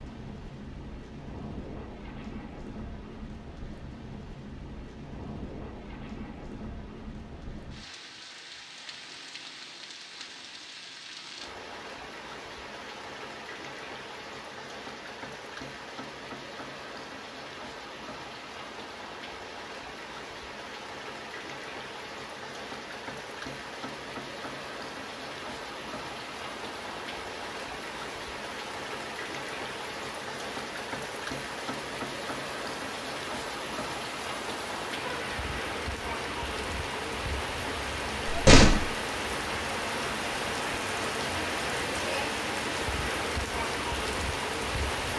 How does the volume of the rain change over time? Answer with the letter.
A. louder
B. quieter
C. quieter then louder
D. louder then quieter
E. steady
A.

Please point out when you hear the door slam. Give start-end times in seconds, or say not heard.
38.2-38.9.